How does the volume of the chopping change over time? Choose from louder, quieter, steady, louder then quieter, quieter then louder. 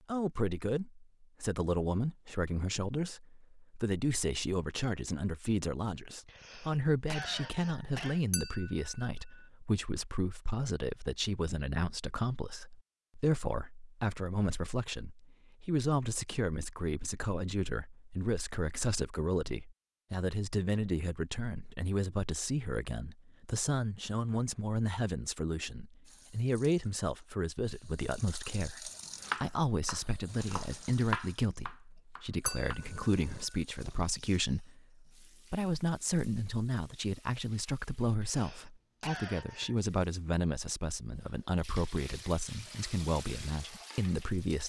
louder then quieter.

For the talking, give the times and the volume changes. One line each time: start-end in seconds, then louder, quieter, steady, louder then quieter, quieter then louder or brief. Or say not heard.
0.1-44.6 steady.